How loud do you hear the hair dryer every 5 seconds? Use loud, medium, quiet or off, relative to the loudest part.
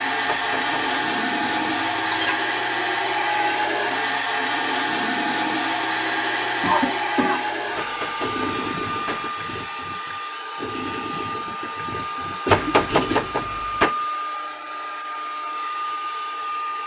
loud, loud, medium, medium.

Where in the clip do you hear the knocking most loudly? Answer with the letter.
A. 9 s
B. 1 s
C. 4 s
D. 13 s
D.